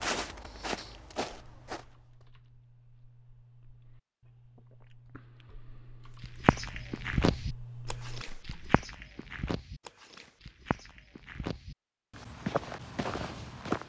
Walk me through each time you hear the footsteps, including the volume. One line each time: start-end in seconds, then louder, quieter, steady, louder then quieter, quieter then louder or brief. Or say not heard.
0.0-2.2 brief
6.2-13.8 quieter then louder.